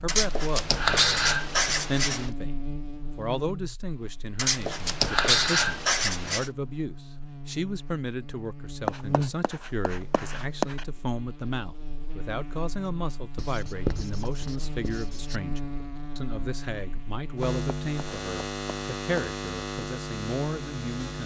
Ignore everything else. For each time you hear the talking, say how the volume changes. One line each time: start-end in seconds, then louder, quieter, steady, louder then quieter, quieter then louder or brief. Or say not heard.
0.0-21.2 steady.